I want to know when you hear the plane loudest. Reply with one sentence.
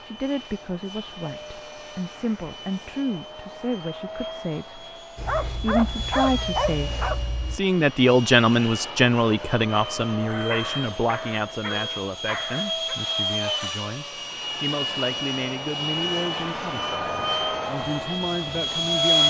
The volume of the plane peaks at 19 seconds.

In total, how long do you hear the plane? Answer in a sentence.
The plane can be heard for 19 seconds in total.